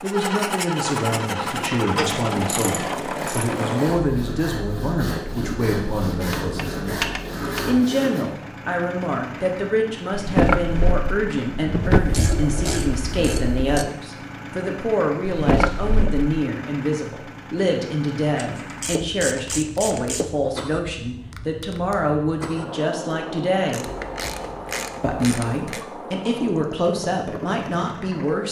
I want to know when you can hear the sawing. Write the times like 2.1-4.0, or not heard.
1.1-8.2.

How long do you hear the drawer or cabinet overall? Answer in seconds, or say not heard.
3 s.